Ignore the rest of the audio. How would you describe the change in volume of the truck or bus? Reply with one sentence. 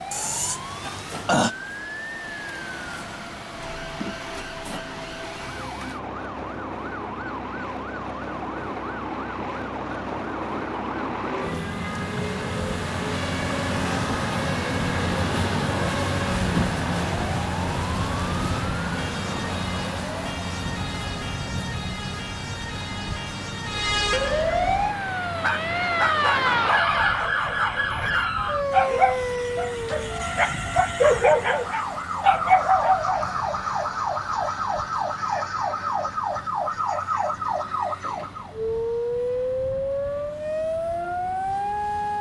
The loudness of the truck or bus goes up, then down.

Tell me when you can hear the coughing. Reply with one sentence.
You can hear the coughing from 0.1 to 1.6 s.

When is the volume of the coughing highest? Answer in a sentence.
The volume of the coughing peaks at 1 second.